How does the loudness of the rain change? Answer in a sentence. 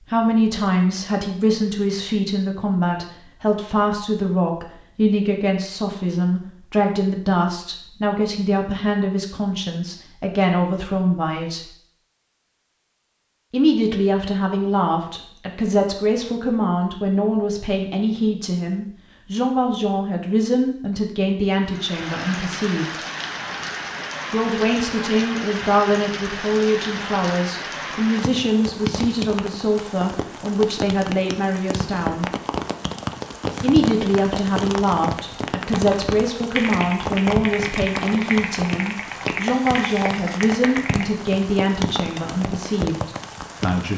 The loudness of the rain stays about the same.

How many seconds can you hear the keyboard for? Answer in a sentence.
You can hear the keyboard for 5 seconds altogether.